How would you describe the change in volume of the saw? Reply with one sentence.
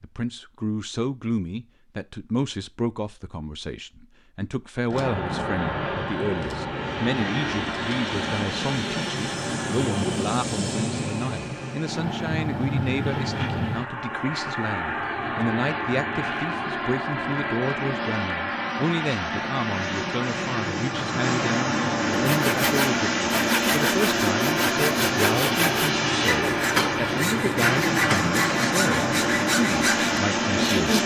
The volume of the saw stays about the same.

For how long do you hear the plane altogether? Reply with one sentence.
You can hear the plane for 26 seconds altogether.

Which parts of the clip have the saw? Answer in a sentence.
The saw can be heard from 22.1 to 31.0 s.